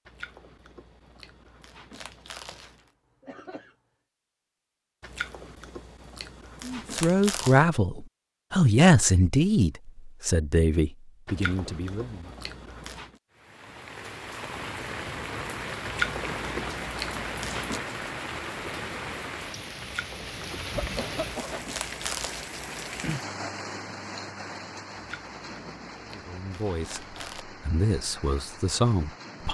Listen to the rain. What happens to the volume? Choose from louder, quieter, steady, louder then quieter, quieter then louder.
quieter.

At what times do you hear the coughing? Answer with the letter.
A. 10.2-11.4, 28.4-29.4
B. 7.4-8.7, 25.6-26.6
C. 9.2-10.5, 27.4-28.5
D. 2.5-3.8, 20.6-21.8
D.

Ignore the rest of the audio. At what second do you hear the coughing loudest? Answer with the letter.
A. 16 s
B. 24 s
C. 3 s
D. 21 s
D.